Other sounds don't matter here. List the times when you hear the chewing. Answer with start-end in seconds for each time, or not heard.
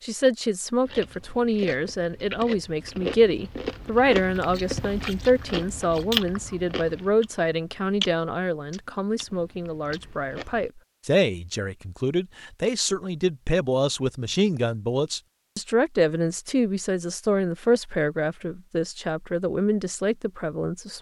0.8-10.7.